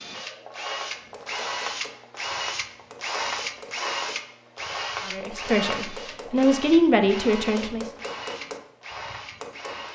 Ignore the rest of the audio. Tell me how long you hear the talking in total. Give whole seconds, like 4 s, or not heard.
3 s.